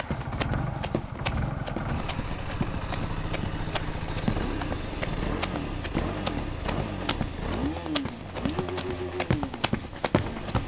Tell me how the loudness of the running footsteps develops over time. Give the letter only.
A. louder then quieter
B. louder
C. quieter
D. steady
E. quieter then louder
D.